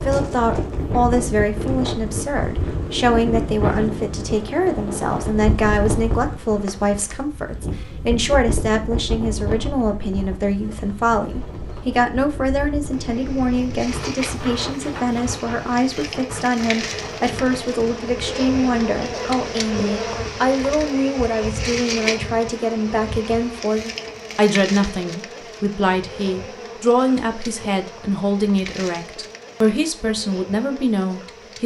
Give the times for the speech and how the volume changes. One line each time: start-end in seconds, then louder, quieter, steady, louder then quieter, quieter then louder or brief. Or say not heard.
0.0-31.6 steady.